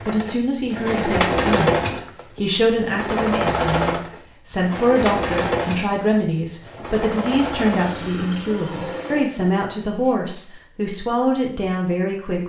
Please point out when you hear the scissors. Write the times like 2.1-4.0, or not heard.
not heard.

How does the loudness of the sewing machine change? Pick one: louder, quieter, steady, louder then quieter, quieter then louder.
quieter.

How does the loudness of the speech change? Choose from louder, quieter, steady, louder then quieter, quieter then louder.
steady.